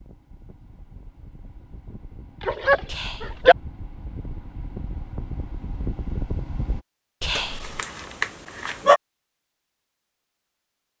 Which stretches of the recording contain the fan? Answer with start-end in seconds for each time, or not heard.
0.0-6.8.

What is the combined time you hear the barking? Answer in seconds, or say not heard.
3 s.